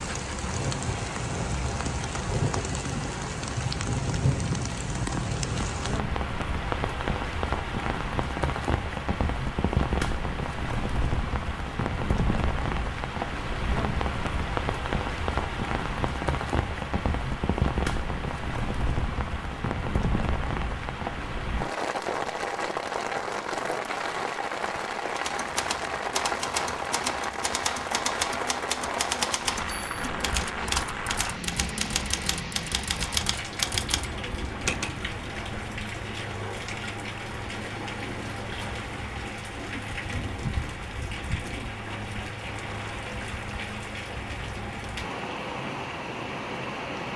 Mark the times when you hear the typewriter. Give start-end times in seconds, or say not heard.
25.1-35.0.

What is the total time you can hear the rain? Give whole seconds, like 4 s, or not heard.
47 s.